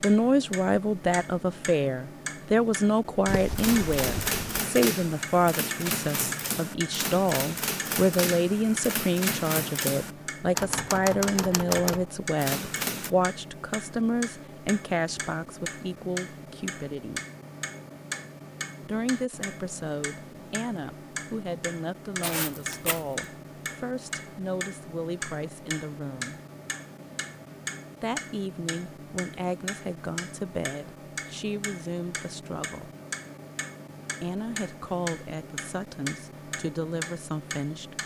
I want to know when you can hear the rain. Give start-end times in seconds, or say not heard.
not heard.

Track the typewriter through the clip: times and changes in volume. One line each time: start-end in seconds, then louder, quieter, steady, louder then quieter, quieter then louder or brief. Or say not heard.
3.5-13.1 steady.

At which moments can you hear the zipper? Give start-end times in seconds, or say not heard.
3.2-4.6, 22.2-23.1.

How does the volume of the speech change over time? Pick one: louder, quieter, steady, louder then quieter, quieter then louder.
quieter.